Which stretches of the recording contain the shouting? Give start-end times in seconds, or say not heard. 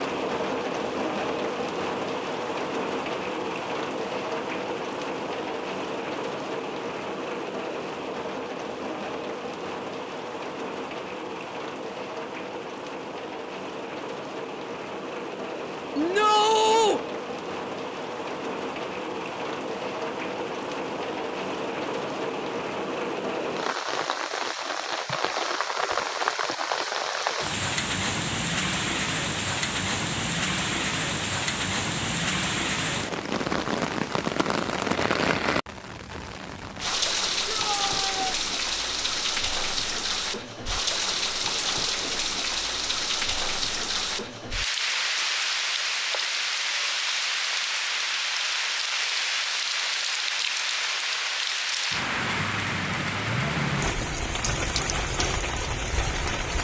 15.9-17.0, 37.5-38.2.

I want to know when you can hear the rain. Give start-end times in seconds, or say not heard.
0.0-56.5.